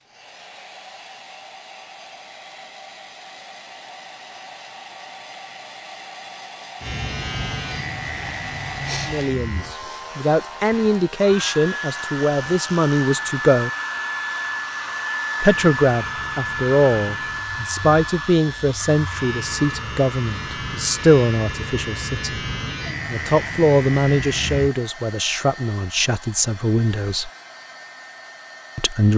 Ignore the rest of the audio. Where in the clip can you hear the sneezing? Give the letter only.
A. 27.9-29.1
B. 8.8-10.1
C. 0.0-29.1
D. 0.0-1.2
B.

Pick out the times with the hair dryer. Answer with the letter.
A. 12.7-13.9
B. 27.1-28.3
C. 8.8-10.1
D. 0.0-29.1
D.